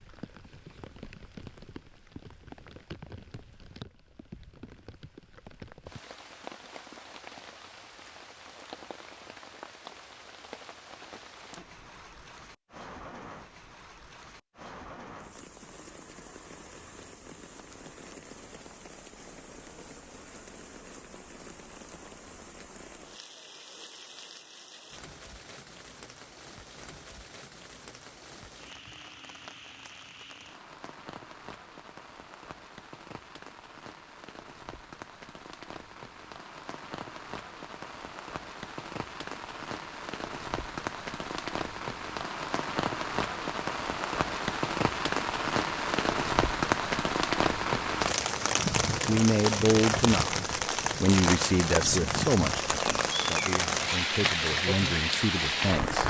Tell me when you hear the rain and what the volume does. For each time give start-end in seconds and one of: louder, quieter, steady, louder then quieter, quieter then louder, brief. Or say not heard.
0.0-56.0 louder.